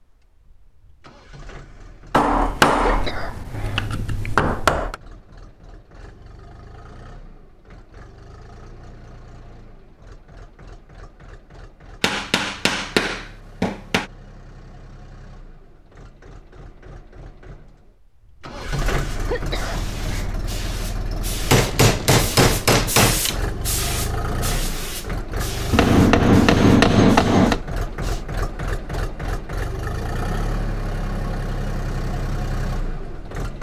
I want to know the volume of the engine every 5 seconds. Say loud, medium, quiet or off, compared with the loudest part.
quiet, quiet, quiet, medium, loud, loud, loud.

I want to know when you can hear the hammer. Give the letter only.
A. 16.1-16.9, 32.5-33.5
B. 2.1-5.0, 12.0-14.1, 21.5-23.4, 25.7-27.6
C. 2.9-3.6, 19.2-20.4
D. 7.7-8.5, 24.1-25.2
B.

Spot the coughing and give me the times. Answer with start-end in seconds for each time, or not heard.
2.9-3.6, 19.2-20.4.